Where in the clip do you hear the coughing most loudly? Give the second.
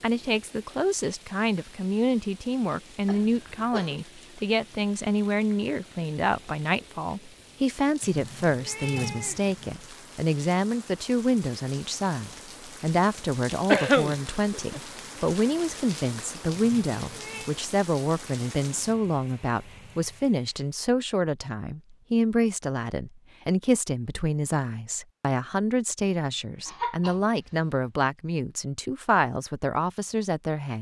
14 s.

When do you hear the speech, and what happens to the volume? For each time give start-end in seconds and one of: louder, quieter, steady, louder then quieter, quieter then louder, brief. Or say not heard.
0.0-30.7 steady.